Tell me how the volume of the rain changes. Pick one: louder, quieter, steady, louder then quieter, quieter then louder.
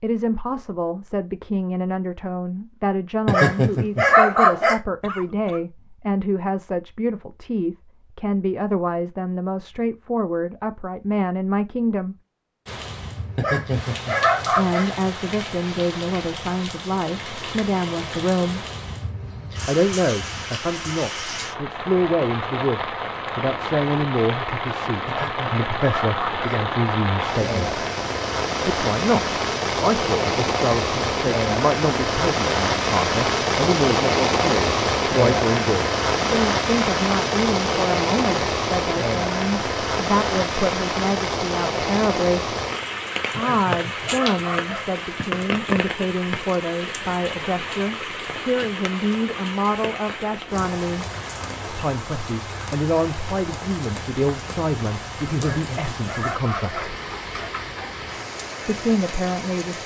louder then quieter.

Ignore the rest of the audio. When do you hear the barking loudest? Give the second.
4 s.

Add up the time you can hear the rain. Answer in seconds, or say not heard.
47 s.